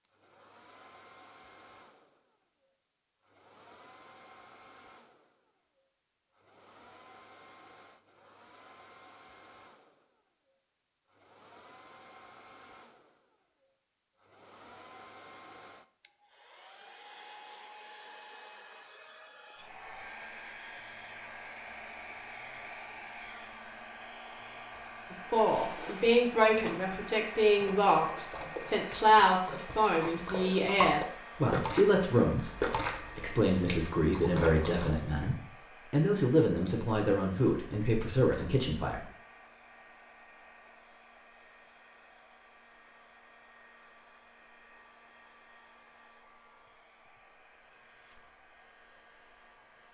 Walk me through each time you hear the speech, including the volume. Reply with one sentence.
You can hear the speech from 25.1 to 39.0 s, at a steady volume.